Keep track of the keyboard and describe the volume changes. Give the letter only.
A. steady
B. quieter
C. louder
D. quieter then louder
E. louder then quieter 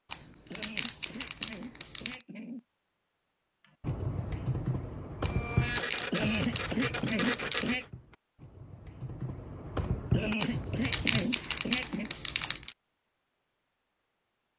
D.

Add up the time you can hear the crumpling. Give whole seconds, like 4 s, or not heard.
7 s.